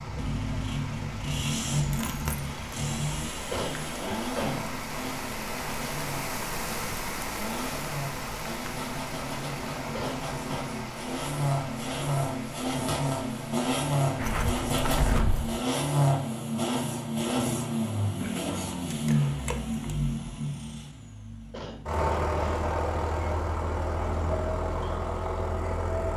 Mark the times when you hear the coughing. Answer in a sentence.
You can hear the coughing from 3.5 to 4.8 s, from 9.9 to 10.7 s and from 21.5 to 22.7 s.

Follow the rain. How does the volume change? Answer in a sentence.
The loudness of the rain goes up, then down.